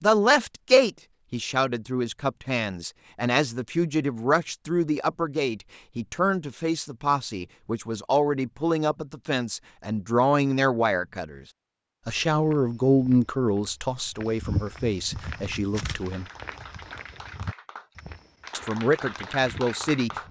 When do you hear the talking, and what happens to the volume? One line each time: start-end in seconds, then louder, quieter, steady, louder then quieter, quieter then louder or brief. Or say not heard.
0.0-11.4 steady
12.1-16.2 quieter
18.5-20.1 brief.